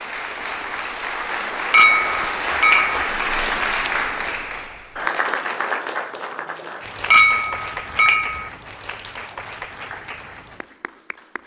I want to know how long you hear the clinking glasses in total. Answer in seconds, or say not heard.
3 s.